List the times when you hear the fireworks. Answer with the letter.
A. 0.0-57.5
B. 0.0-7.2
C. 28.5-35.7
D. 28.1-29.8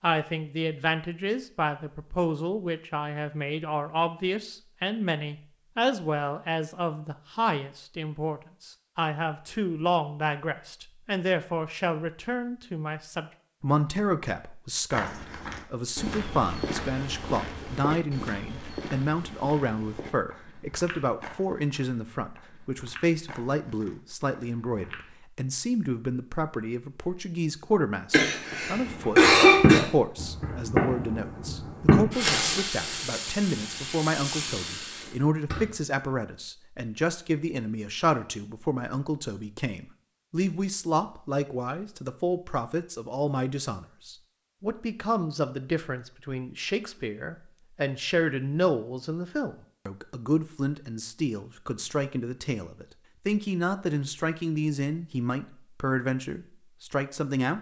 C.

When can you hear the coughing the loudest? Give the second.
29 s.